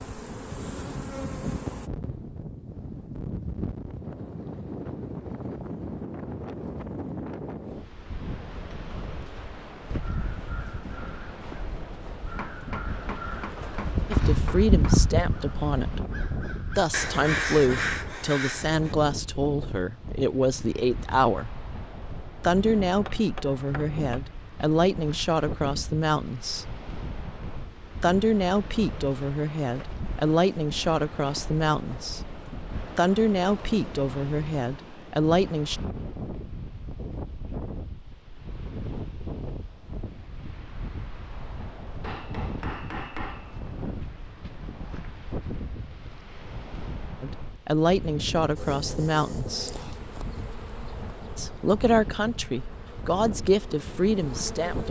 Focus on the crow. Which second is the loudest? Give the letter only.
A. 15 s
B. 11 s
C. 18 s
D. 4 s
A.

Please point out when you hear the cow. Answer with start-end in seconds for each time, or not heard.
not heard.